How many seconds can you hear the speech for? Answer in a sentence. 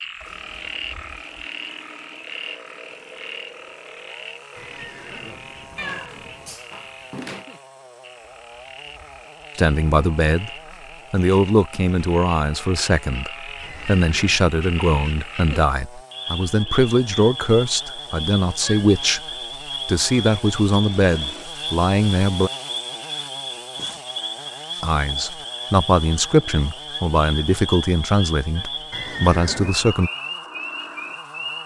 The speech can be heard for 17 seconds in total.